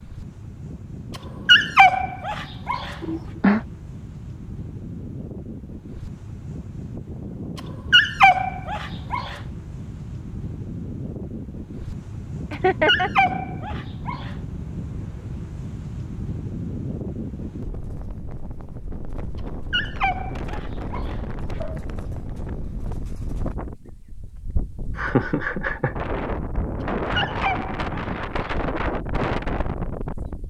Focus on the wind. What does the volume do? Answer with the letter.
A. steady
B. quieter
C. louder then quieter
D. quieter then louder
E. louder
E.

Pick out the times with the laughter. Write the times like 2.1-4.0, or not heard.
3.0-3.6, 12.5-13.1, 24.9-25.9.